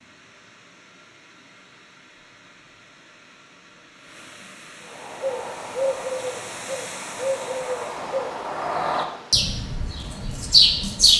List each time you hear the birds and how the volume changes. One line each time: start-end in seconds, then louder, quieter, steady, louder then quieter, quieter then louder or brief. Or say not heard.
5.0-11.1 louder.